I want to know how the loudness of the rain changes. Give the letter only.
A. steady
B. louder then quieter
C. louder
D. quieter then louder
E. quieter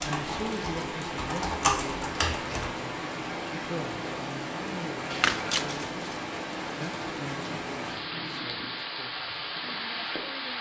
A.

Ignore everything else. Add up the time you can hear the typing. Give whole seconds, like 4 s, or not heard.
3 s.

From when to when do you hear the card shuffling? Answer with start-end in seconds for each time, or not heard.
5.1-6.0.